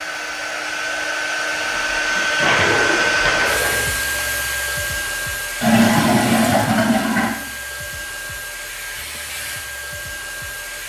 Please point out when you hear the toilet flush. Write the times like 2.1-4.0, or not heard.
1.5-3.9, 5.6-7.3.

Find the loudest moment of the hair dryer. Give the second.
3 s.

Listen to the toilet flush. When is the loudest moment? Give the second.
6 s.